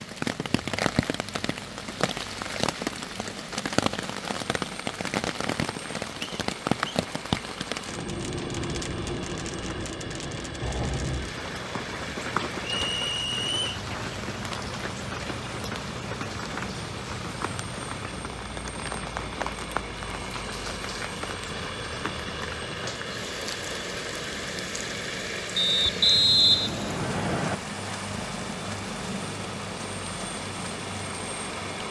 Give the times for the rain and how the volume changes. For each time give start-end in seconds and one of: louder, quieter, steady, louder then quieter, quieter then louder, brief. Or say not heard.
0.0-31.8 quieter.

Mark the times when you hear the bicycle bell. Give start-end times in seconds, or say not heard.
not heard.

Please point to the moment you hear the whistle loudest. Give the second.
26 s.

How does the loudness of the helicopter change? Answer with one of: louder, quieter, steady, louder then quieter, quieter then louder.
louder.